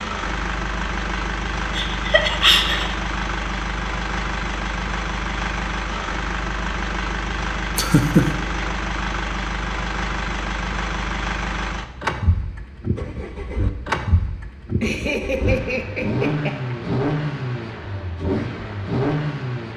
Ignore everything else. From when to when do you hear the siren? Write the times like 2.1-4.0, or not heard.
not heard.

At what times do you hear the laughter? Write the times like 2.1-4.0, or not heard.
1.8-3.0, 7.8-8.2, 14.8-16.8.